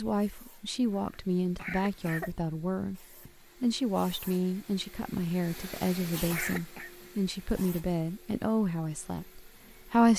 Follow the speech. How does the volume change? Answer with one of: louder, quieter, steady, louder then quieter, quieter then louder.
steady.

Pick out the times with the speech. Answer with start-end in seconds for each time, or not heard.
0.0-10.1.